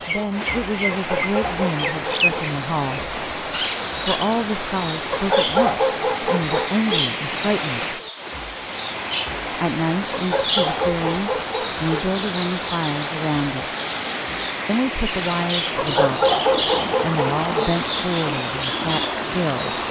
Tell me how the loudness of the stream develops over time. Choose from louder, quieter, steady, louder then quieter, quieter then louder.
steady.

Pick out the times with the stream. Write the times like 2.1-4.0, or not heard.
0.0-19.8.